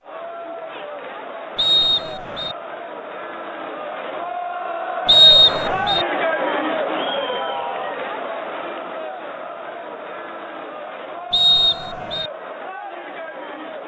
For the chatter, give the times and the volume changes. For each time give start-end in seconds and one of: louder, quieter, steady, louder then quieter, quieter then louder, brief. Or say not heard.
0.0-13.8 louder then quieter.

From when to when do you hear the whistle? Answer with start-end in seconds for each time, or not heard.
1.6-2.5, 5.0-6.0, 11.3-12.3.